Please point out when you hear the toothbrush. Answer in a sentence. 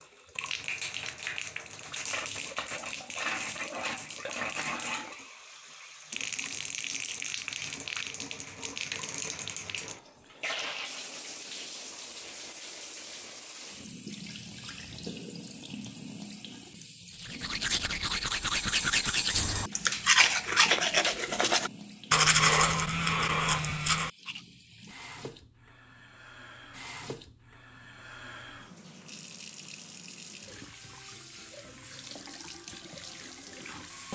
The toothbrush can be heard from 17.2 to 24.4 s.